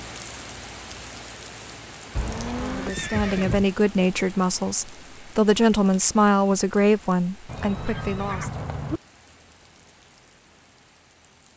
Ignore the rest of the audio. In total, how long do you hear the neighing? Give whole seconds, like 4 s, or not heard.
3 s.